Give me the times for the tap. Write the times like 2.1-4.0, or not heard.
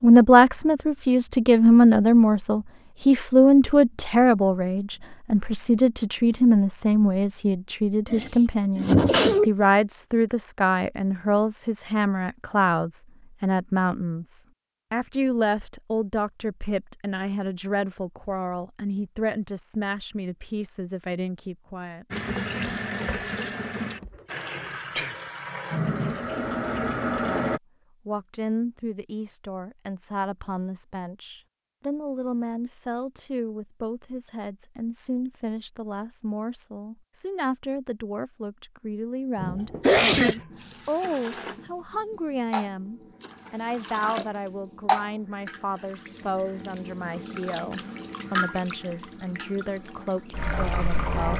22.1-27.6, 39.4-51.3.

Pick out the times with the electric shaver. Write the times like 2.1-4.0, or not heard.
not heard.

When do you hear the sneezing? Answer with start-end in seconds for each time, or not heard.
8.1-9.5, 24.0-25.1, 39.8-40.4.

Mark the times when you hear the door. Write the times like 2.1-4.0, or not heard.
not heard.